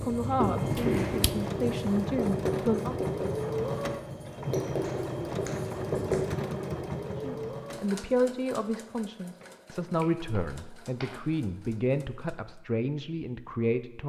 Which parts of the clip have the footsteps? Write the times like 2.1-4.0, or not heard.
not heard.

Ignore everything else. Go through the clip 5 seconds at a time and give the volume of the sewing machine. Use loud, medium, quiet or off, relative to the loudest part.
loud, loud, quiet.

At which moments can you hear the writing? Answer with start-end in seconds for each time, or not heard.
0.0-6.4.